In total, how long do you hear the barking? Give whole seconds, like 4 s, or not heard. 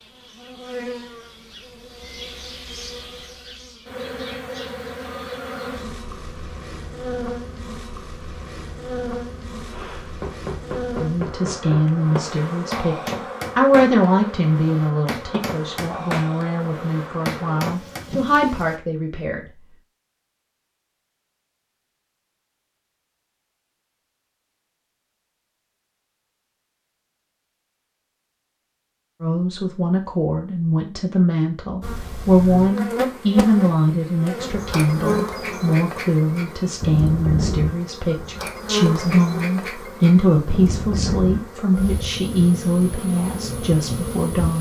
not heard.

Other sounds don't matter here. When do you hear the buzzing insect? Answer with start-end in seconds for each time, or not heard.
0.0-18.8, 31.8-44.5.